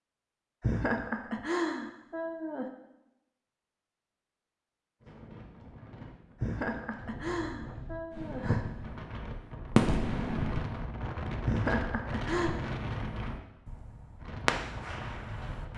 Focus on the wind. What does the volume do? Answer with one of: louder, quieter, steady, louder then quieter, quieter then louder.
louder then quieter.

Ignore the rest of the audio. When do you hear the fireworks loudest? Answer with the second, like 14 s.
10 s.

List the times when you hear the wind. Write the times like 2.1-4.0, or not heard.
5.0-15.7.